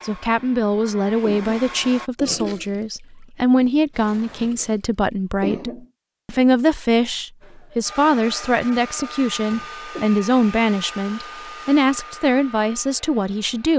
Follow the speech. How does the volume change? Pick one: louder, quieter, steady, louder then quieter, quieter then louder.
steady.